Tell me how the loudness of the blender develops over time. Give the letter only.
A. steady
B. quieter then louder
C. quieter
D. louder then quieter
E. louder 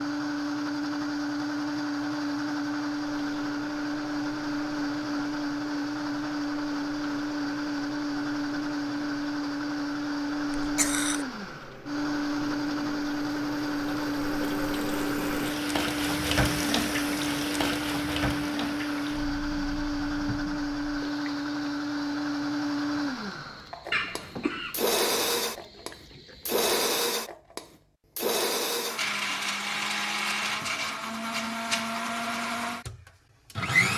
A.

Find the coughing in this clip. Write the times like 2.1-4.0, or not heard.
10.6-11.2, 23.9-24.8.